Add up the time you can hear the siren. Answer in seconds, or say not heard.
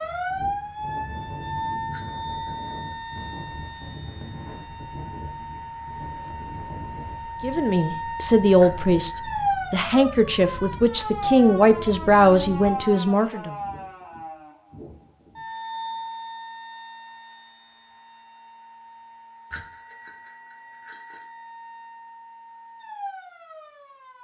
24 s.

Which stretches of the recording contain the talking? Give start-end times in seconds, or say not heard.
7.4-13.6.